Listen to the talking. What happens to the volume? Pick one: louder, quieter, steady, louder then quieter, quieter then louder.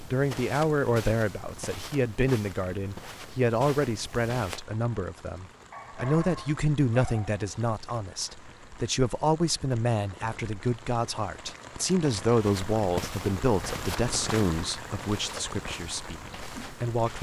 steady.